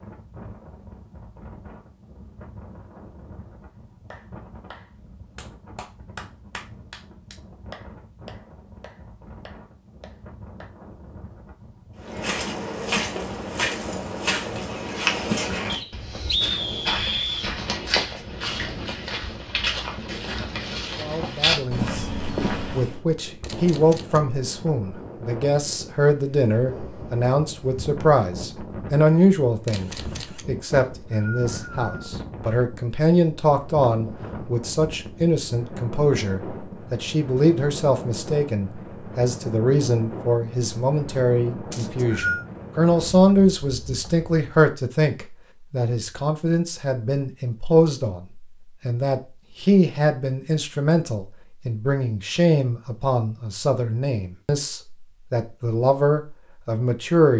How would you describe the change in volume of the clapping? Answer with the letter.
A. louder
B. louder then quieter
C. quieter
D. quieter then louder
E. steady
B.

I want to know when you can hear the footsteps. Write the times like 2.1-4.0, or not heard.
12.0-23.0.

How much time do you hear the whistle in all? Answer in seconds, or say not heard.
4 s.